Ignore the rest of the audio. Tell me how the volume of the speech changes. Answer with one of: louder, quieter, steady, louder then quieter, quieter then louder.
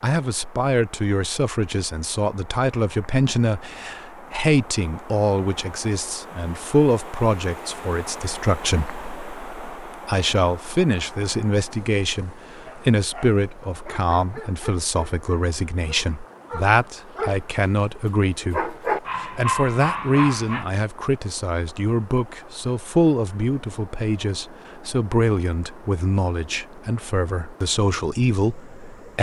steady.